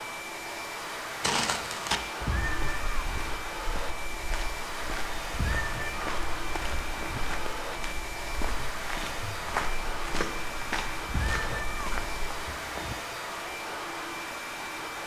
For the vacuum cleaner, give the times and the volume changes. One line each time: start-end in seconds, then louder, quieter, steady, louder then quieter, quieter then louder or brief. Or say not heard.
0.0-15.0 steady.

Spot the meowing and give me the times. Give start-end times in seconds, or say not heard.
2.2-3.4, 5.3-7.2, 11.1-12.9.